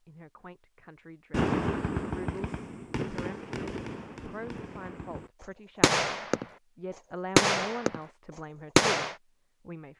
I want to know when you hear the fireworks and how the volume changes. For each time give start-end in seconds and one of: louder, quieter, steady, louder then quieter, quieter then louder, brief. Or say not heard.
1.3-6.5 quieter then louder
7.3-8.0 brief
8.8-9.2 brief.